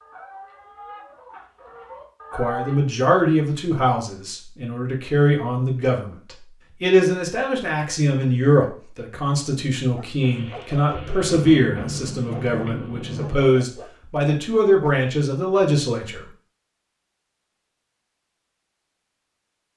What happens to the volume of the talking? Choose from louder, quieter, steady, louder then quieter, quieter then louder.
steady.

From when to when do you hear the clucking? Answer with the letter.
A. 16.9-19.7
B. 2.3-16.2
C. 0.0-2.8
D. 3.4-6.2
C.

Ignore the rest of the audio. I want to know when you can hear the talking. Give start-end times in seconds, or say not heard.
2.3-16.2.